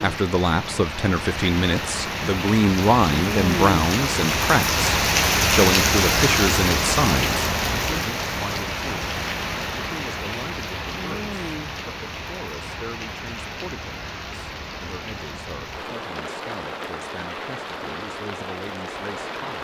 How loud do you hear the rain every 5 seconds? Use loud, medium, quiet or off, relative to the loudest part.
loud, loud, medium, medium.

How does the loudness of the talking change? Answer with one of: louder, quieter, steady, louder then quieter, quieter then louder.
quieter.